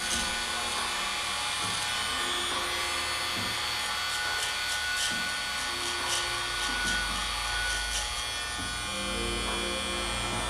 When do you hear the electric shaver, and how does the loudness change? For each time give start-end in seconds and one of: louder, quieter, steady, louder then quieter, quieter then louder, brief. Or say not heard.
0.0-10.4 steady.